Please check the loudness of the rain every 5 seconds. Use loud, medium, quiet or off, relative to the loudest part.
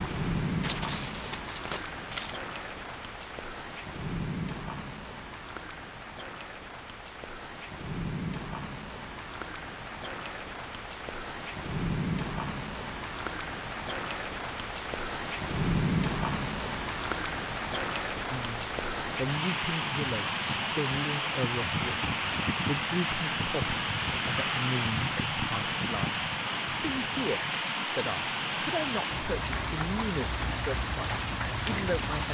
medium, medium, medium, loud, loud, loud, loud.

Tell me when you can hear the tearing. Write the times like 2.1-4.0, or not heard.
0.6-2.4.